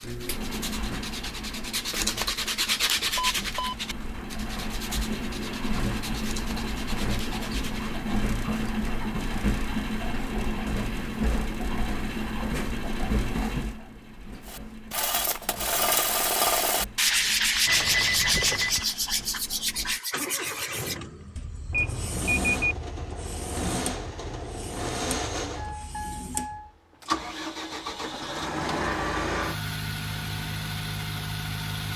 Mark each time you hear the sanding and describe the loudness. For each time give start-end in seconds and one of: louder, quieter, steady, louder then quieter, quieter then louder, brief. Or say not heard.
0.0-8.0 louder then quieter
14.4-26.8 quieter.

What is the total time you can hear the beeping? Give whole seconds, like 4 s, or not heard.
3 s.